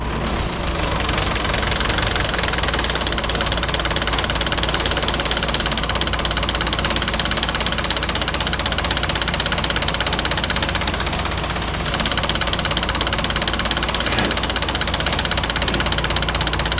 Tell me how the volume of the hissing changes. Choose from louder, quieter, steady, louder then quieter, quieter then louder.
steady.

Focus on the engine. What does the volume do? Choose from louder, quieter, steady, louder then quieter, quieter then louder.
steady.